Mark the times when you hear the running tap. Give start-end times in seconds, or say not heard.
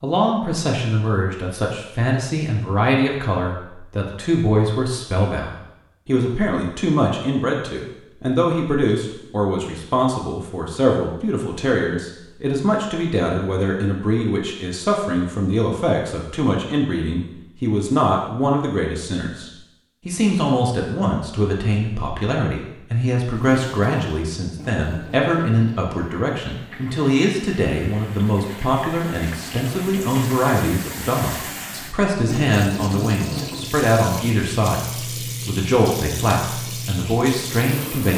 23.2-38.1.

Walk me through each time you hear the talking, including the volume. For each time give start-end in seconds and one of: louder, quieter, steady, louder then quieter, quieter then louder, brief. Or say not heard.
0.0-38.1 steady.